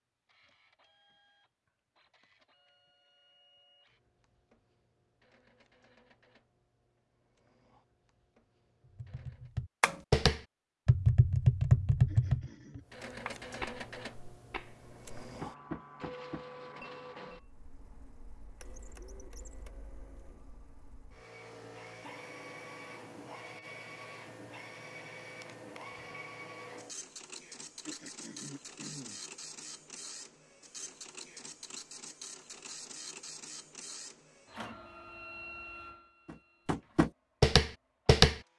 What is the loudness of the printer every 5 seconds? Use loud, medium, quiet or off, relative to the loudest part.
quiet, quiet, loud, loud, loud, loud, loud, medium.